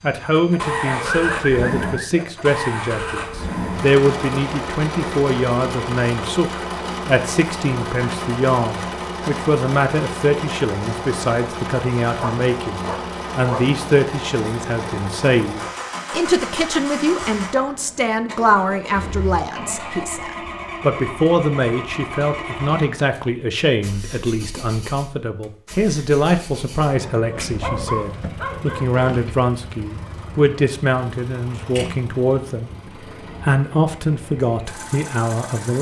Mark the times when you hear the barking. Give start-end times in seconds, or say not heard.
0.8-2.2, 12.2-13.7, 26.9-29.4.